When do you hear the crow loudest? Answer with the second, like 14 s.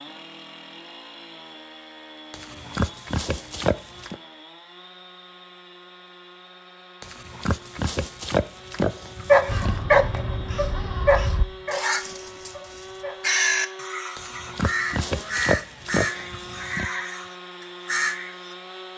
13 s.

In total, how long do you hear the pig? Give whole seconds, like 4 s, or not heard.
7 s.